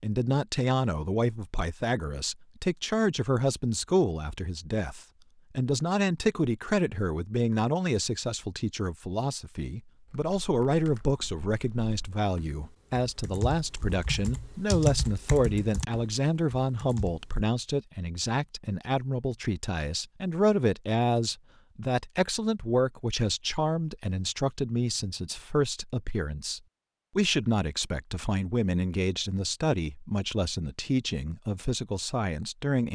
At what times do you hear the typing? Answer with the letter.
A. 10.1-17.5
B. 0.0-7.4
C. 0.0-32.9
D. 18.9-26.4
A.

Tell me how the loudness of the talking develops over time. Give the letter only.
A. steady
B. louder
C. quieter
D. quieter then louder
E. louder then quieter
A.